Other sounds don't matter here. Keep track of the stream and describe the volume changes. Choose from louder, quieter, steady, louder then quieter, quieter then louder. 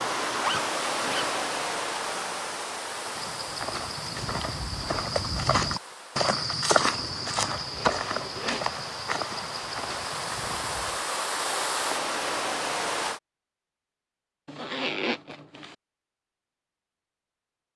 quieter then louder.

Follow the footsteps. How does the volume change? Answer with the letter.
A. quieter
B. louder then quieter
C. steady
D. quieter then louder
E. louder
B.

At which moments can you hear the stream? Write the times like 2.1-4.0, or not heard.
0.0-13.2.